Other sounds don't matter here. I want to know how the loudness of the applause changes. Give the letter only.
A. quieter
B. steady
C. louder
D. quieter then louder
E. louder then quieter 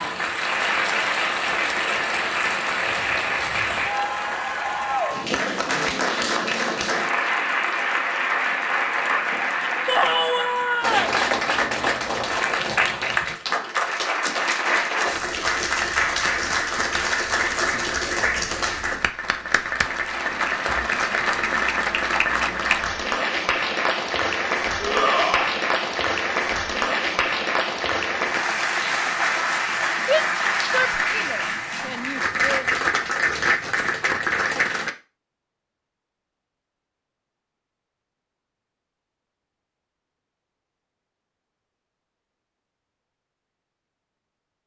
B.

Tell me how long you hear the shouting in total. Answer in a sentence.
You can hear the shouting for 5 seconds altogether.